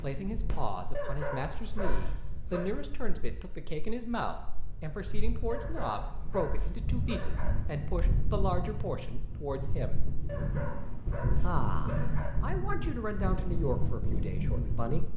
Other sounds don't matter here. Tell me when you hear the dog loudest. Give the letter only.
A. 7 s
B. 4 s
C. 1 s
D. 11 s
C.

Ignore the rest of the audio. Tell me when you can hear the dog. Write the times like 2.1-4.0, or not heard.
0.9-2.7, 5.5-7.5, 10.2-12.3.